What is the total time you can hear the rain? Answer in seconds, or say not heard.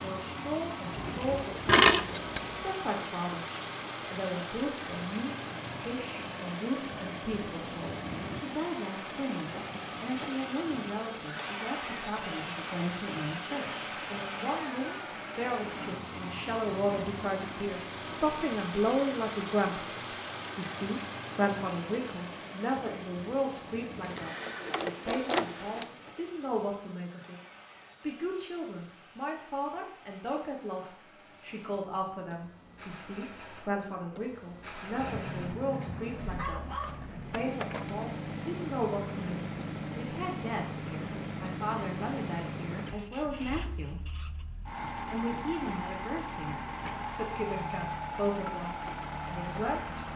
not heard.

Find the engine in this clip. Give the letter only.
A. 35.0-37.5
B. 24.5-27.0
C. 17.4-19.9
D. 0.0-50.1
D.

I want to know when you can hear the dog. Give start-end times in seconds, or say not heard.
35.0-37.5.